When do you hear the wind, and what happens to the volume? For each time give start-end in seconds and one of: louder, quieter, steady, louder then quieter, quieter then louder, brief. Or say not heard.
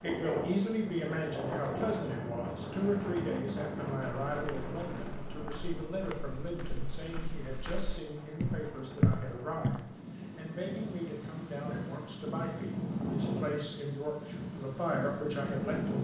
0.0-16.0 quieter then louder.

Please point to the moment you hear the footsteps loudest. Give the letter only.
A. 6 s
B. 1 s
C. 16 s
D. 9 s
D.